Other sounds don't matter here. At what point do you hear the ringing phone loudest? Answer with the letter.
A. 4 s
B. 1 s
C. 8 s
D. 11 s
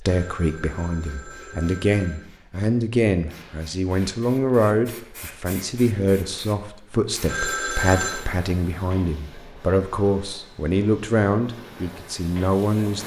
C.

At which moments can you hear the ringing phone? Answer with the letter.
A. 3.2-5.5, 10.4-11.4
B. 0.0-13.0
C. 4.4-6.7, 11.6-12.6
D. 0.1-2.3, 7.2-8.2
D.